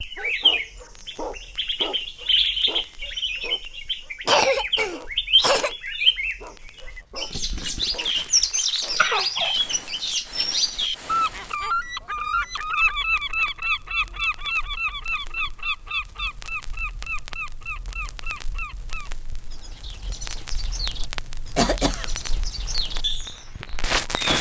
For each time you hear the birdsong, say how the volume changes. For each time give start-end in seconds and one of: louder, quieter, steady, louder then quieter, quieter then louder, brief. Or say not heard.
0.0-24.3 quieter.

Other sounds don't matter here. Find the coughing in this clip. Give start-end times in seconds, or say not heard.
4.2-5.7, 8.9-9.6, 21.6-22.1.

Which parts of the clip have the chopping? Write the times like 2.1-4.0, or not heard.
not heard.